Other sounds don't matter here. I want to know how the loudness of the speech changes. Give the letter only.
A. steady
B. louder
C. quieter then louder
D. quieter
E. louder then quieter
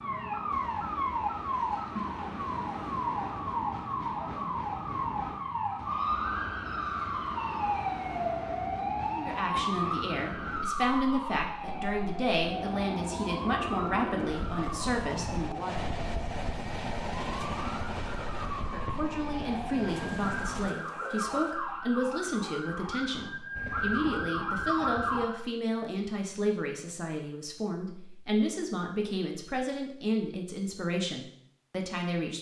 A.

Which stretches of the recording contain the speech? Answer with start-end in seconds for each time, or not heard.
9.1-15.8, 18.6-32.3.